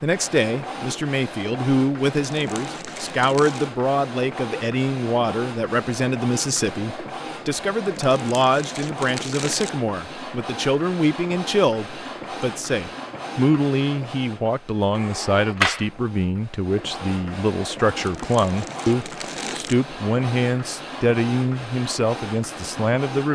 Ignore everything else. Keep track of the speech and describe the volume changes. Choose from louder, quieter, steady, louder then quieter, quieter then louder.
steady.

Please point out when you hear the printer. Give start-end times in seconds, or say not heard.
0.0-23.3.